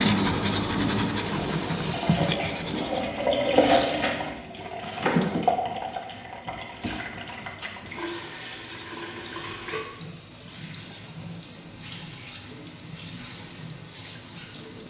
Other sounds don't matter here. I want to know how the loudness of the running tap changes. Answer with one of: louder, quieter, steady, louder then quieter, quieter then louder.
louder then quieter.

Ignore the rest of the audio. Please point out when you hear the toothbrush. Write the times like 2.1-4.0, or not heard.
0.0-3.4.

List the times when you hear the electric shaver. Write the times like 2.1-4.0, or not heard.
not heard.